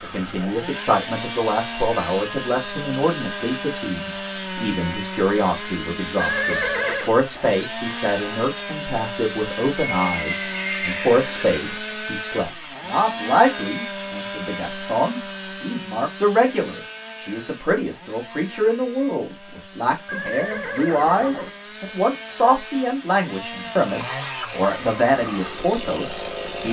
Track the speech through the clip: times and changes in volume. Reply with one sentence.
The speech can be heard from 0.0 to 26.6 s, at a steady volume.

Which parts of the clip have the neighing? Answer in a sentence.
The neighing can be heard from 6.2 to 7.2 s, from 9.8 to 11.8 s and from 20.1 to 21.5 s.